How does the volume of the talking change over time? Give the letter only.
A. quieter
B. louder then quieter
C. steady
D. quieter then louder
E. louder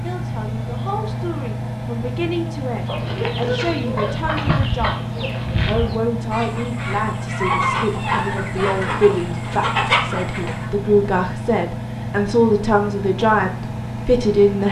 E.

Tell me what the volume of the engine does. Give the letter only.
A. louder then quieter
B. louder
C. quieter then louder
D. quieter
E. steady
E.